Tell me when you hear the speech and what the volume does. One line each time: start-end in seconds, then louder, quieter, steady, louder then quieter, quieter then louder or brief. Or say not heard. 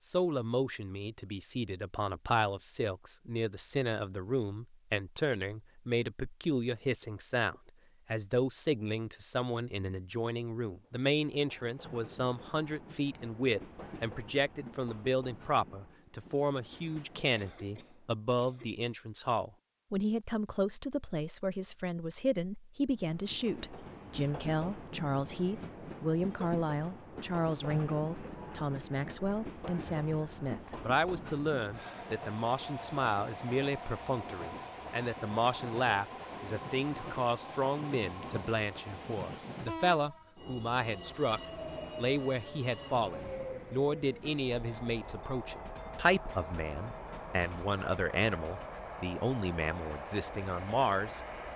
0.1-51.2 steady.